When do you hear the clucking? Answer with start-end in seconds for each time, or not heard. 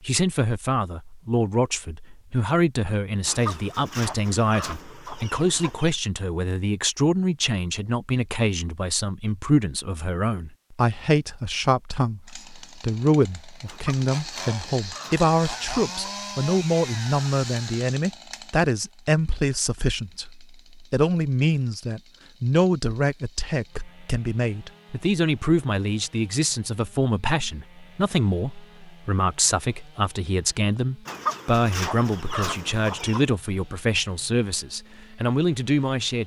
3.2-6.0, 13.7-16.1, 31.1-33.3.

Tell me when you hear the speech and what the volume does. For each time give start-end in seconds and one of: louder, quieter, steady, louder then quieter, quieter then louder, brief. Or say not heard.
0.0-36.2 steady.